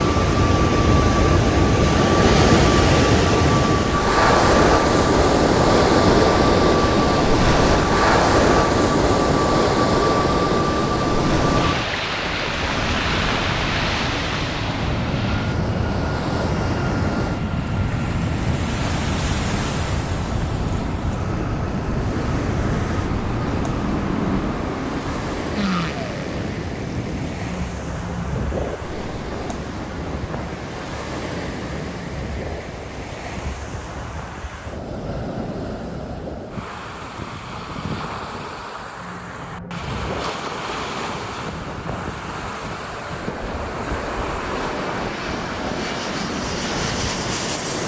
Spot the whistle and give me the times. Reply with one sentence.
You can't hear the whistle here.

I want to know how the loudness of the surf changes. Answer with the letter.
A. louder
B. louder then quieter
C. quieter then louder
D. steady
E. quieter
E.